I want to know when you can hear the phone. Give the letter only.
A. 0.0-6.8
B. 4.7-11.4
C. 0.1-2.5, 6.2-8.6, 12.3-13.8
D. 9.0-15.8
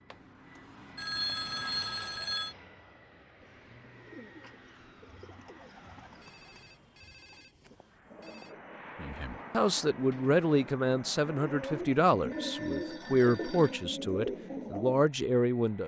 C.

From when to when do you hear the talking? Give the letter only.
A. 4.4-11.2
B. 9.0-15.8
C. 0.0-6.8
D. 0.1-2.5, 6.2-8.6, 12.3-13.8
B.